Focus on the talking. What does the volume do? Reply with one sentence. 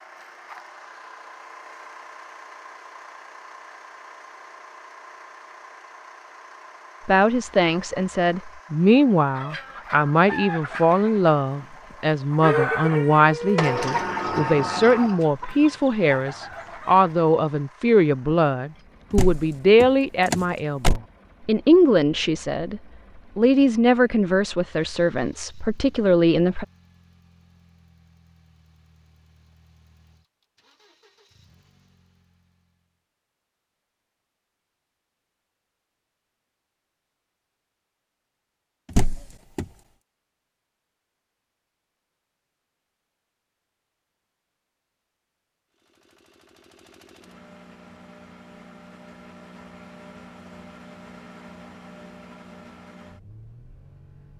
The loudness of the talking stays about the same.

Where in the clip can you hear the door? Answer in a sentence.
You can hear the door from 13.6 to 15.2 s, from 19.1 to 21.0 s and from 38.9 to 39.6 s.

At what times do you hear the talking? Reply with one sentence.
The talking can be heard from 7.0 to 26.6 s.